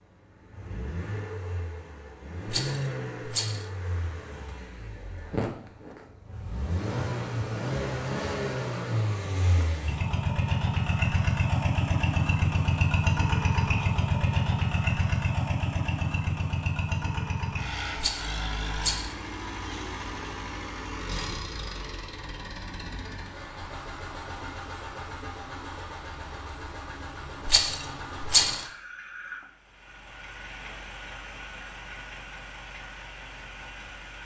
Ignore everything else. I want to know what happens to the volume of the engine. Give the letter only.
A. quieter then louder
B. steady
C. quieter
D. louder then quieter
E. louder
D.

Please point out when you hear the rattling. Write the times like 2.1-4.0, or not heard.
2.5-3.6, 17.9-19.1, 27.4-28.6.